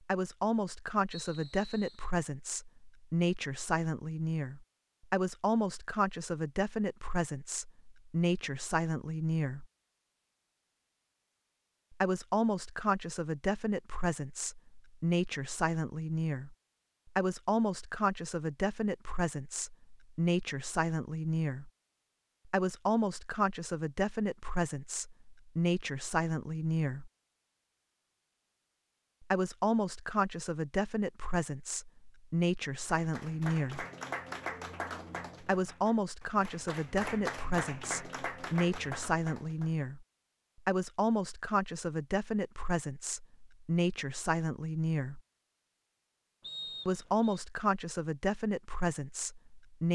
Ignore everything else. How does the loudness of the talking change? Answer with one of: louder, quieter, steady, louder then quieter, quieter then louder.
steady.